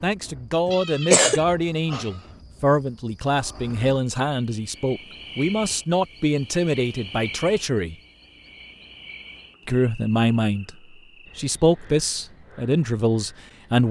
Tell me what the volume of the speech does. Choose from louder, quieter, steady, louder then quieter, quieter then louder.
steady.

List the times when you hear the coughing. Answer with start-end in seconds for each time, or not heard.
0.7-1.4.